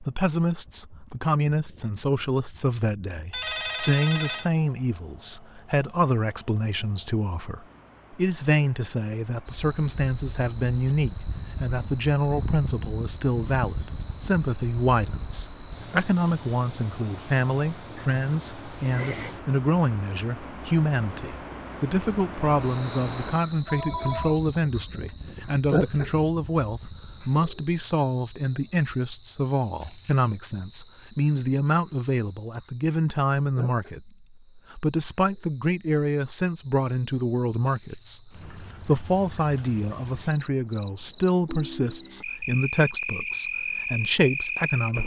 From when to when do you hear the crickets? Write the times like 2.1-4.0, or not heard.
9.4-45.0.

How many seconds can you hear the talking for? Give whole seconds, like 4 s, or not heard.
45 s.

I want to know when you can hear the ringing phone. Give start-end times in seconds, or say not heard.
3.3-4.5, 23.6-24.4, 41.5-42.2.